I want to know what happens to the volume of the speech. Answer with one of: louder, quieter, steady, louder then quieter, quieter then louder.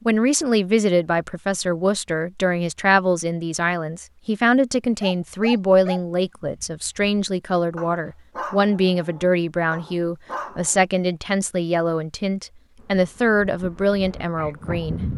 steady.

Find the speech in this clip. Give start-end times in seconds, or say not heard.
0.1-15.1.